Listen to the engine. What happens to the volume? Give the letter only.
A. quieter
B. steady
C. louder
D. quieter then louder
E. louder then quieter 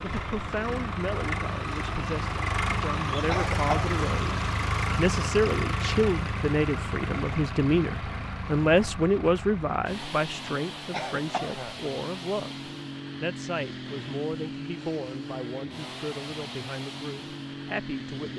A.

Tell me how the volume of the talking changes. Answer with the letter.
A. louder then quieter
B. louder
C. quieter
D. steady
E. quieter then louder
A.